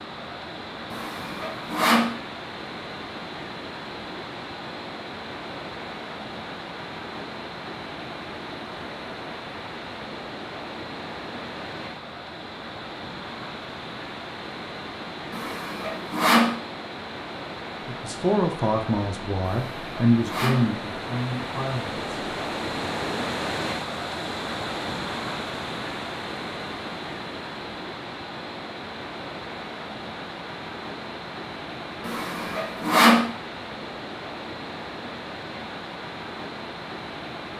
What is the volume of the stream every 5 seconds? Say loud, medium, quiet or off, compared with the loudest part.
medium, medium, medium, medium, loud, loud, medium, medium.